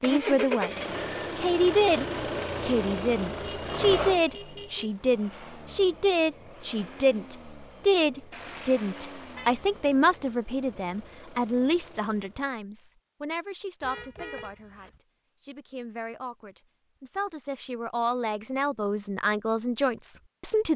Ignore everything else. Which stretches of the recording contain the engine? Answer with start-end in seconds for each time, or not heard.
0.0-12.5.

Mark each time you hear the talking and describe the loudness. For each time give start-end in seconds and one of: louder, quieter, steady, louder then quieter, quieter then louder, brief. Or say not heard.
0.0-20.7 quieter then louder.